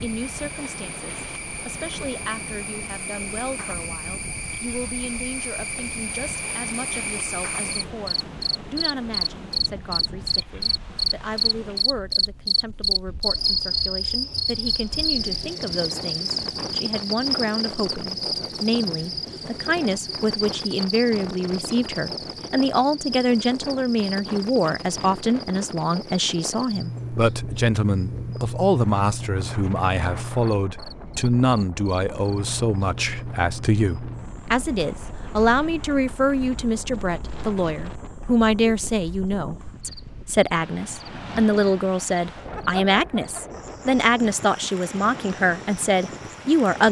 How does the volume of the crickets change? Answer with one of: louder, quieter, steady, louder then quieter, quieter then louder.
louder then quieter.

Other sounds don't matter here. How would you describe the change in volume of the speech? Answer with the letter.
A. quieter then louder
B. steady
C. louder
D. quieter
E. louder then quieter
C.